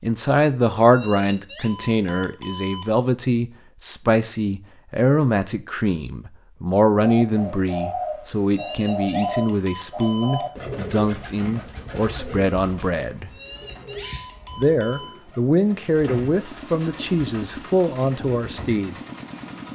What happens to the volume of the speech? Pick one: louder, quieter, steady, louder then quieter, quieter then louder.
steady.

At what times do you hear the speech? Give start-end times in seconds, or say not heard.
0.0-13.3, 14.6-18.9.